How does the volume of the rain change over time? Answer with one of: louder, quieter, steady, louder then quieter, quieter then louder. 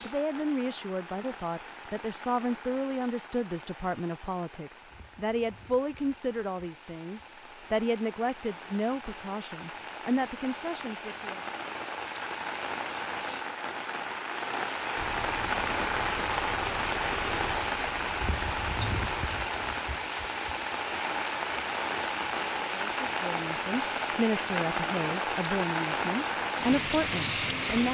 louder.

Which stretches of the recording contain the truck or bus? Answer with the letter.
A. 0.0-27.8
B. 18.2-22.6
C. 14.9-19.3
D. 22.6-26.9
C.